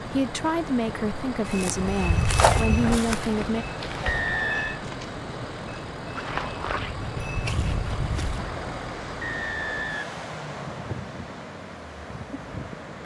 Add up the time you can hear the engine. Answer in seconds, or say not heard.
13 s.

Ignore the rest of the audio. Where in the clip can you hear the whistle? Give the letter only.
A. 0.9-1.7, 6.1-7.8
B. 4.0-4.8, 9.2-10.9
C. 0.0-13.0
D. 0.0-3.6
B.